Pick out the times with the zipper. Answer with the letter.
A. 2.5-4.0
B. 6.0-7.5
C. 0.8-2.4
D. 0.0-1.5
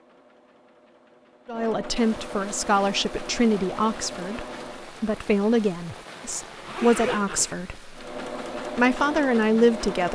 B.